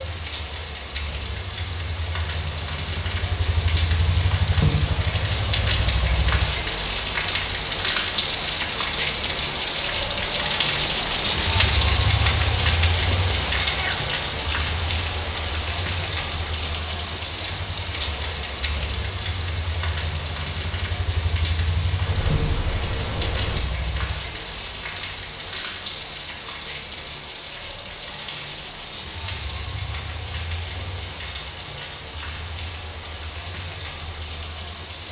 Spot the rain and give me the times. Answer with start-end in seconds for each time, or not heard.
0.0-35.0.